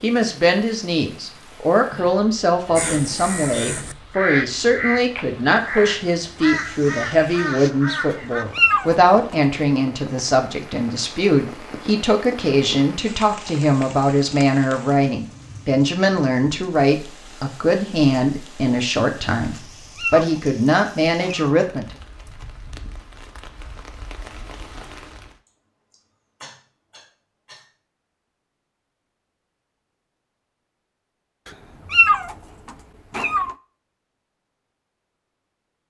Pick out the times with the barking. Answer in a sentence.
You can't hear the barking here.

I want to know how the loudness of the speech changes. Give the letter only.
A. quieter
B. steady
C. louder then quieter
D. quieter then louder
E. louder
B.